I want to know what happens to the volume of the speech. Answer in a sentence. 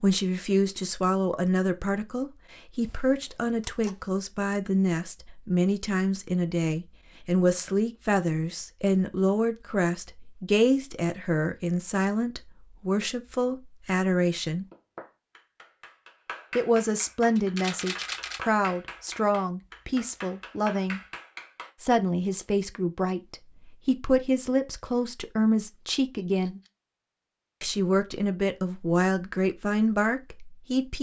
The loudness of the speech stays about the same.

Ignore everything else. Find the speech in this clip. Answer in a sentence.
You can hear the speech from 0.0 to 14.7 s, from 16.6 to 21.0 s, from 21.8 to 26.6 s and from 27.6 to 30.9 s.